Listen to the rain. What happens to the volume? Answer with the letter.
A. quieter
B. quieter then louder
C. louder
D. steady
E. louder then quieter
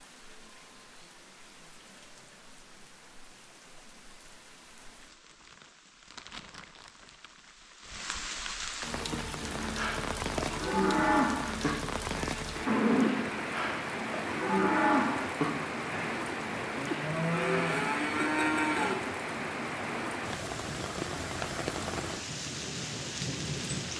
C.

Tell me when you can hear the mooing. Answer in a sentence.
The mooing can be heard from 9.4 to 18.9 s.